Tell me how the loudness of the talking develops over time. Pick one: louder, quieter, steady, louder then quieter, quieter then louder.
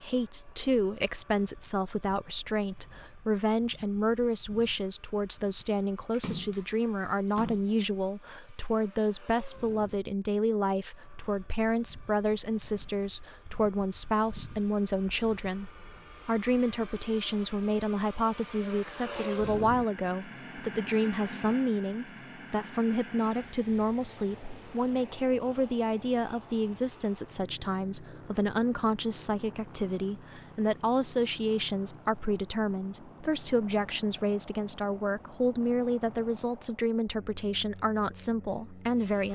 steady.